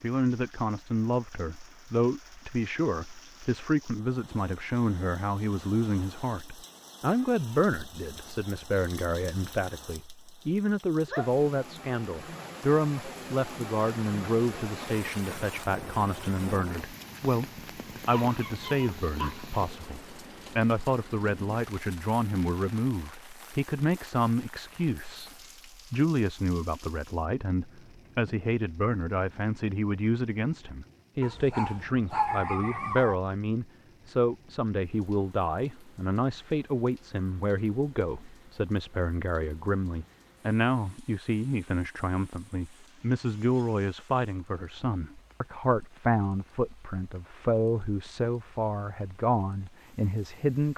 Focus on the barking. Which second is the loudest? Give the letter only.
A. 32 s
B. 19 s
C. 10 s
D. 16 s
A.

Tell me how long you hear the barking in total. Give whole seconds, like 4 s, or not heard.
4 s.